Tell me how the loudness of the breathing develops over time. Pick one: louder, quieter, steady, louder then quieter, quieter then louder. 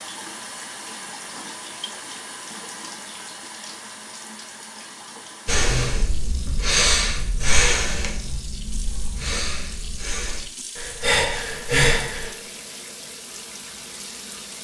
quieter then louder.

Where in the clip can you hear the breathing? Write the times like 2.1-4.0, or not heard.
5.5-12.3.